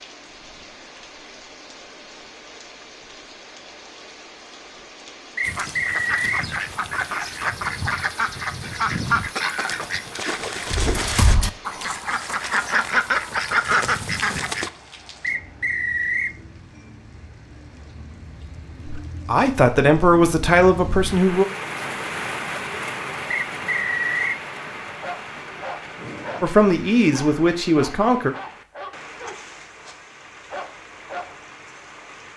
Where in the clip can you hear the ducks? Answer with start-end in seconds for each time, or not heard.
5.4-14.7.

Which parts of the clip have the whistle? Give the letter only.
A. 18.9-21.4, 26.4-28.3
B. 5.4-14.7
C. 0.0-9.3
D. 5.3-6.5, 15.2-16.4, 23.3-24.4
D.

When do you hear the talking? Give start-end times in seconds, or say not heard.
18.9-21.4, 26.4-28.3.